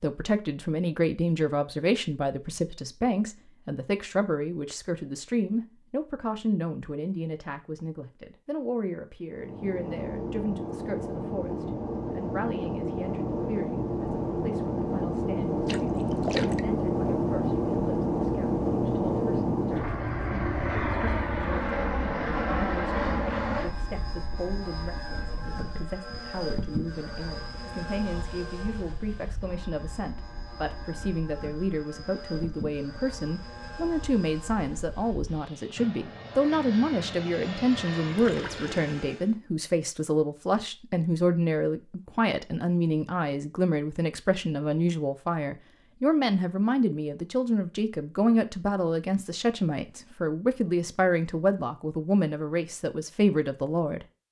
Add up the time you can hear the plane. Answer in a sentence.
You can hear the plane for 30 seconds altogether.